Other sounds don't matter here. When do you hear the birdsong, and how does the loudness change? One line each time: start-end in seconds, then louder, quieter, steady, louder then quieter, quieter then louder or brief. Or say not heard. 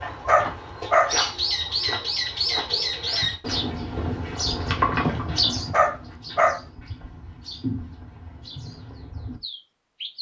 0.0-10.1 quieter.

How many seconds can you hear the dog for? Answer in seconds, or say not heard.
2 s.